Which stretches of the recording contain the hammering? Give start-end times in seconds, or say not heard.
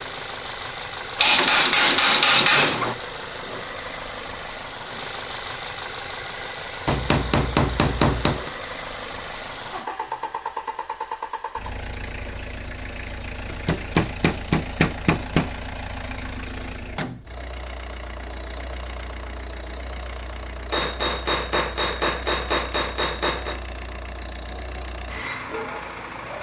1.1-3.0, 6.8-8.5, 13.5-15.5, 20.7-23.6.